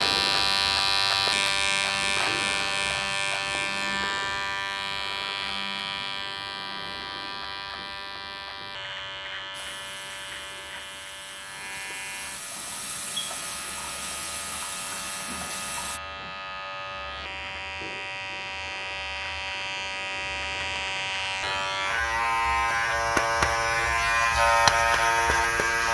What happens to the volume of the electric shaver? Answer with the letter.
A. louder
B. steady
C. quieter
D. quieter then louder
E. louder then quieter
D.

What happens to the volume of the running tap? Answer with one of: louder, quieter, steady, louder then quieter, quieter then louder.
louder.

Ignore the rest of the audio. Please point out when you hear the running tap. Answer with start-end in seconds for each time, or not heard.
9.5-16.0.